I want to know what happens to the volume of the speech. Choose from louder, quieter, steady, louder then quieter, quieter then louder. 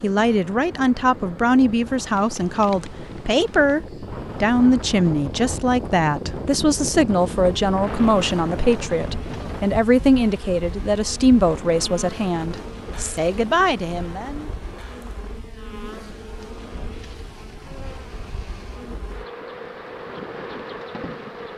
steady.